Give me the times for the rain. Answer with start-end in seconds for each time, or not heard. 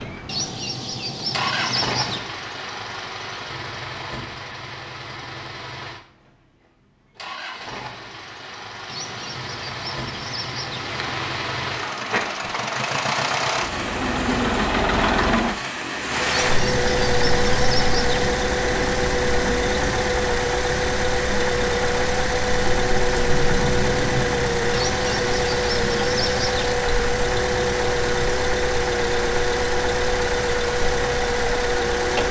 10.8-32.2.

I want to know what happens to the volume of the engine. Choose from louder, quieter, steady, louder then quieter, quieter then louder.
louder.